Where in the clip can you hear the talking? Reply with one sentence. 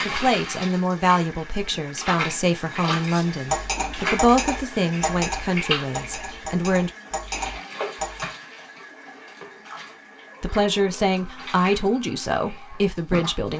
You can hear the talking from 0.1 to 6.9 s and from 10.4 to 13.5 s.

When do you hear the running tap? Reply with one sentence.
You can hear the running tap from 0.0 to 13.5 s.